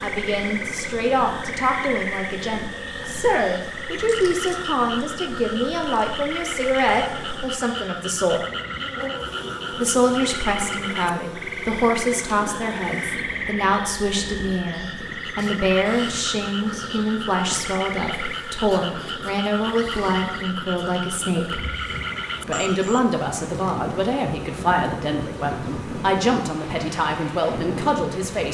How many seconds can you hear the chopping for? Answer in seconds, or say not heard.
not heard.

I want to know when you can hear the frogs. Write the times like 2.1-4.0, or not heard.
0.0-23.2.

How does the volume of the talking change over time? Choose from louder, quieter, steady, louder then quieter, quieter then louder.
steady.